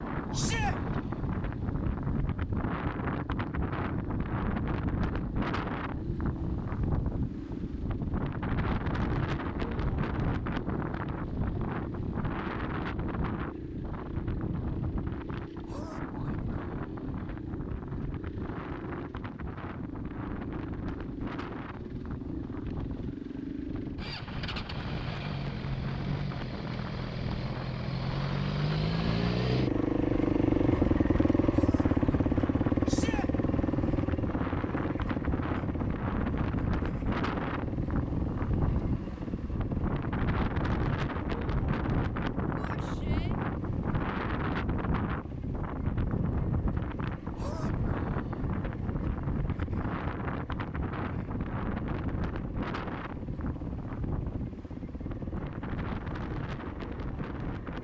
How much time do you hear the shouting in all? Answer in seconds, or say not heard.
2 s.